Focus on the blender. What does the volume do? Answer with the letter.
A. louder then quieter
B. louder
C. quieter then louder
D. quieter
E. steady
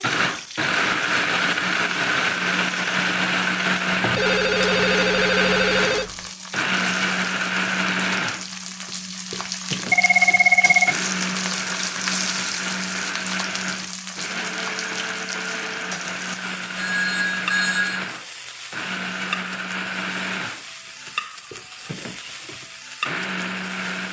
D.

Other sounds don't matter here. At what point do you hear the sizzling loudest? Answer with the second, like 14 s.
12 s.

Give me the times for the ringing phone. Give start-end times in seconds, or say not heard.
4.2-6.2, 9.9-10.9, 16.8-18.1.